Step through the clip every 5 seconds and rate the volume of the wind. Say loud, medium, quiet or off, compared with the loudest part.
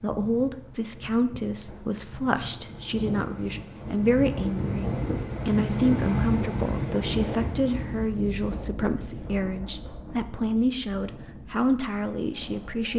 medium, loud, quiet.